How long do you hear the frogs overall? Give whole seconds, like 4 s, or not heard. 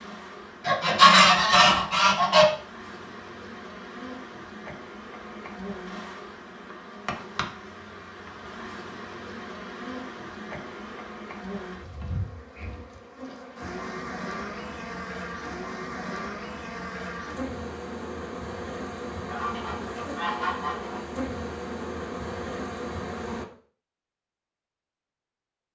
not heard.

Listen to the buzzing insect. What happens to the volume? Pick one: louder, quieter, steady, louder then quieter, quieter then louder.
louder.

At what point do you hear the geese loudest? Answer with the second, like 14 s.
1 s.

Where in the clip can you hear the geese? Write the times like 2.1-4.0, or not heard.
0.7-2.5, 19.2-21.0.